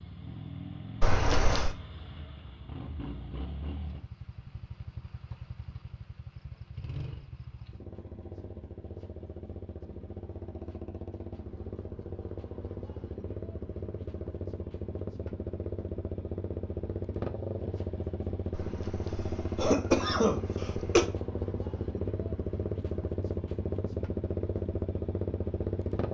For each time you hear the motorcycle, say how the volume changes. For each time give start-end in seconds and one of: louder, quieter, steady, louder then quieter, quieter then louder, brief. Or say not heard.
0.0-26.0 louder.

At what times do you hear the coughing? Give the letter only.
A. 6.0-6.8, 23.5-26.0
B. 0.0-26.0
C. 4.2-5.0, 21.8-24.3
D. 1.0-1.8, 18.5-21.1
D.